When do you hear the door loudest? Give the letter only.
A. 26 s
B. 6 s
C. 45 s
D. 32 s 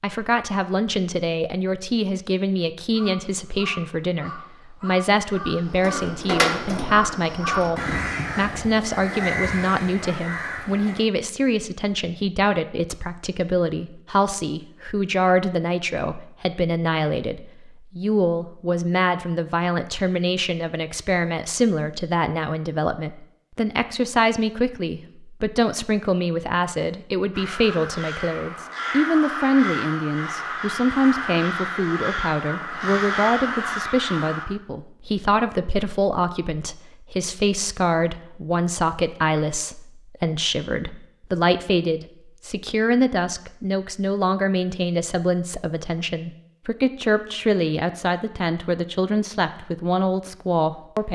B.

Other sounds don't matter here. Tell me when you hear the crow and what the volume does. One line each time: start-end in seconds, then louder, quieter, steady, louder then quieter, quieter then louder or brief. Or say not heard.
2.9-11.1 louder
27.3-34.5 louder.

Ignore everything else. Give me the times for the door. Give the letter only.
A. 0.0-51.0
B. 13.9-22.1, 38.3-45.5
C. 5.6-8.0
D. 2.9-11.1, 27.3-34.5
C.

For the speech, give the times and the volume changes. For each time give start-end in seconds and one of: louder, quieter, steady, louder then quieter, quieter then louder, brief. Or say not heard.
0.0-51.0 steady.